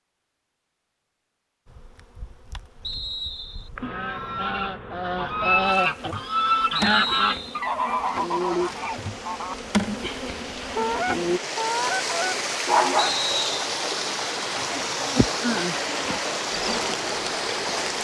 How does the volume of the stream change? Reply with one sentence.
The volume of the stream goes up.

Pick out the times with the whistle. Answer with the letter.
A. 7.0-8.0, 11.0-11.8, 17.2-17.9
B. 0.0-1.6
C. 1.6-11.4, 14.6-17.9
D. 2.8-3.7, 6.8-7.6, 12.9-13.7
D.